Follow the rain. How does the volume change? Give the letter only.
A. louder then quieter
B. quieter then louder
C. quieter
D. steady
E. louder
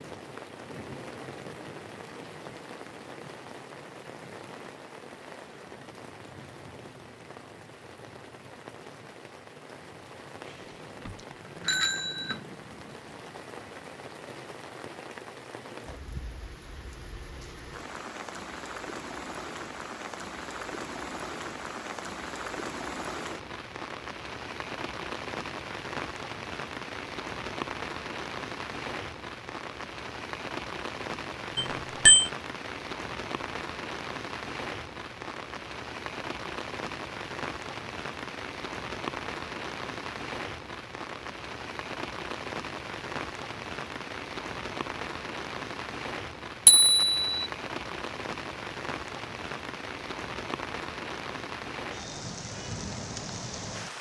E.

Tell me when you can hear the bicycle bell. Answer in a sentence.
The bicycle bell can be heard from 10.4 to 12.4 s, from 31.6 to 32.3 s and from 46.6 to 47.5 s.